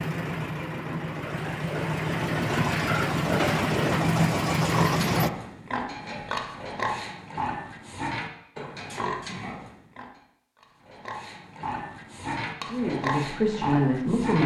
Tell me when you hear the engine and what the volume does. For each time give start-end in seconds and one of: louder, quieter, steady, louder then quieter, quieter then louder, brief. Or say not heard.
0.0-5.3 louder.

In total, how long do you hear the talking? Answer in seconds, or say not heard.
2 s.